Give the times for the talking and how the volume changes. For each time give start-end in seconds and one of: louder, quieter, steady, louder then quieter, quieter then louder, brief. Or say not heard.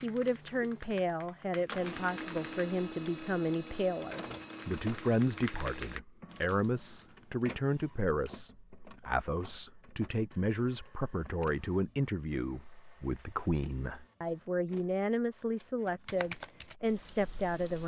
0.0-17.8 steady.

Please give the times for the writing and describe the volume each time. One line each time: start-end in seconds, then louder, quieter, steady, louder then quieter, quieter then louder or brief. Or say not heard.
not heard.